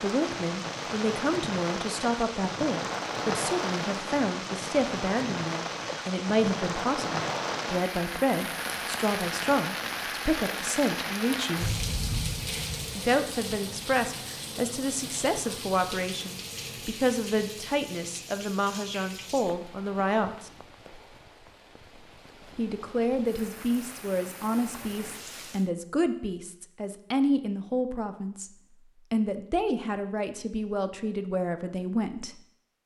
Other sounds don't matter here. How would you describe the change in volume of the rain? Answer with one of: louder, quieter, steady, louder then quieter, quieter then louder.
quieter.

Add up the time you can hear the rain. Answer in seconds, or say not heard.
26 s.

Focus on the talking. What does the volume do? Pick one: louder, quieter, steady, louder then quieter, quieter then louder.
steady.